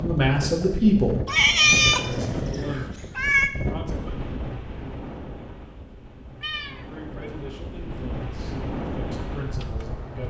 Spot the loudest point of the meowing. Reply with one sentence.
The volume of the meowing peaks at 2 seconds.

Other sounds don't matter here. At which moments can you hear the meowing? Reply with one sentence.
You can hear the meowing from 1.2 to 3.5 s and from 6.4 to 7.3 s.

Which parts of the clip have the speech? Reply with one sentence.
You can hear the speech from 0.0 to 4.2 s and from 6.9 to 10.2 s.